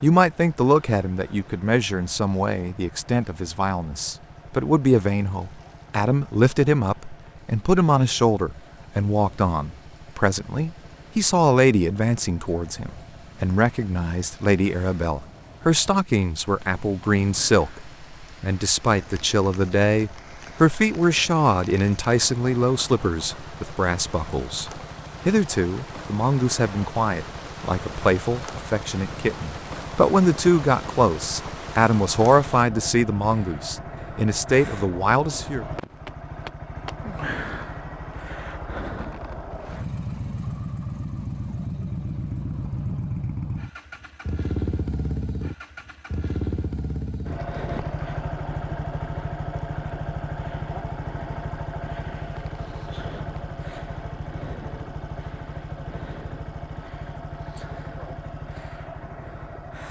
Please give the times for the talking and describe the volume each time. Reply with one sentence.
The talking can be heard from 0.0 to 35.6 s, at a steady volume.